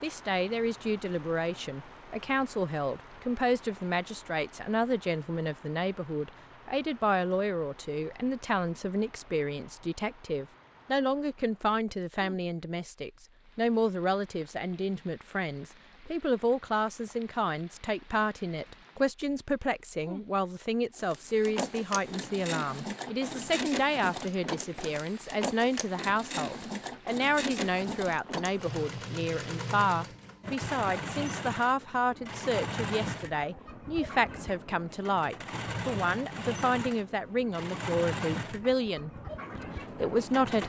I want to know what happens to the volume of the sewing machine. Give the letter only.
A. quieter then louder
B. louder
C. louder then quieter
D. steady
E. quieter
D.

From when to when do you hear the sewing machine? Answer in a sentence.
You can hear the sewing machine from 20.9 to 40.6 s.